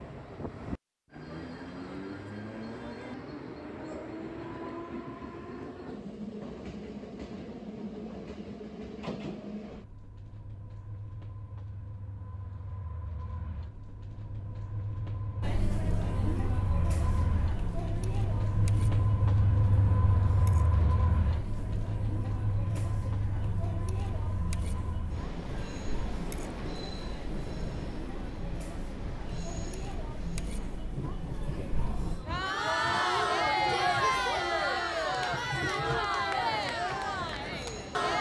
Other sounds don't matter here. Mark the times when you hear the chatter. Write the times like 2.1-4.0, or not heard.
15.4-38.1.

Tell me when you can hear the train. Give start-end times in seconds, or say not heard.
0.0-38.1.